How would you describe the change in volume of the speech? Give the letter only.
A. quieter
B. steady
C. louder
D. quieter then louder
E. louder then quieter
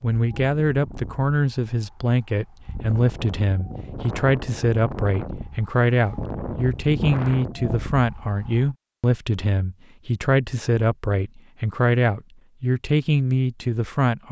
B.